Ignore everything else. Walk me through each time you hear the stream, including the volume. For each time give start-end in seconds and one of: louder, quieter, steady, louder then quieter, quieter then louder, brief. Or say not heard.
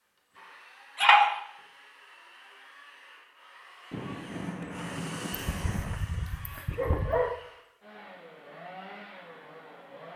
not heard.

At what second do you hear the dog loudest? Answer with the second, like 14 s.
1 s.